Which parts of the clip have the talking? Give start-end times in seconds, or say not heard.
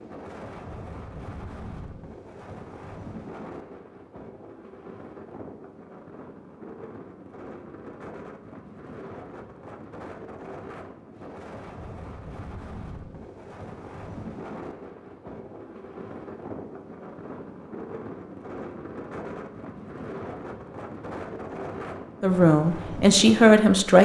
22.2-24.0.